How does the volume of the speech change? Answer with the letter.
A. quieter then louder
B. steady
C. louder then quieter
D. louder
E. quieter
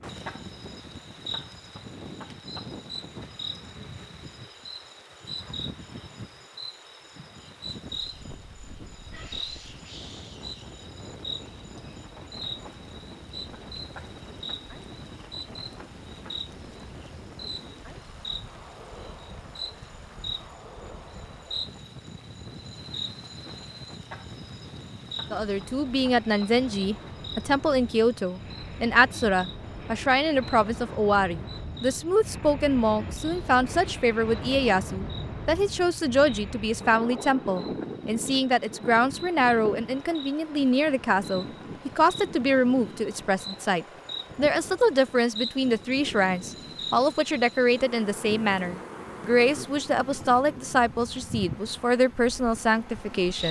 B.